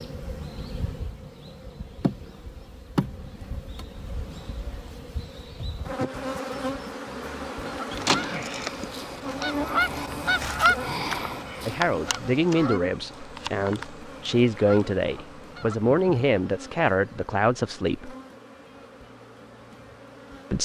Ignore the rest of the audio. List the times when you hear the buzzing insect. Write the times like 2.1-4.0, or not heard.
0.0-20.6.